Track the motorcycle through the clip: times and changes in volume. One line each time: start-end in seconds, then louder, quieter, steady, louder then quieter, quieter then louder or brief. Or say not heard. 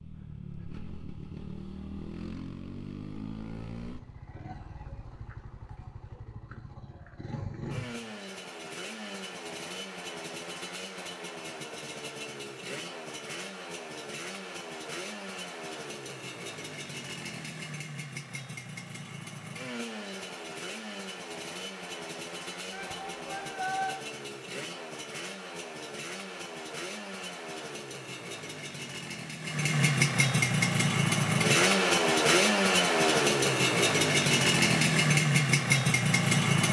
0.0-36.6 louder.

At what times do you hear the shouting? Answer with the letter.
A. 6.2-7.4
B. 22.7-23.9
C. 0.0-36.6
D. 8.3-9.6
B.